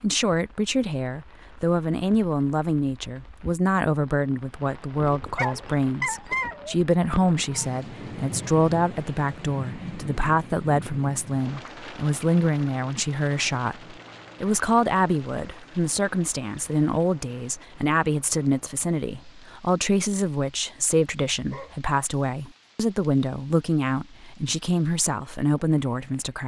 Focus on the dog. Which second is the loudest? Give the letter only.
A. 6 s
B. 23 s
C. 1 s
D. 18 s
A.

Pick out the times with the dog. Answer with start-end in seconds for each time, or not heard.
5.2-6.8, 21.5-22.4.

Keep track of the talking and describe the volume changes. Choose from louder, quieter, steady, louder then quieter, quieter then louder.
steady.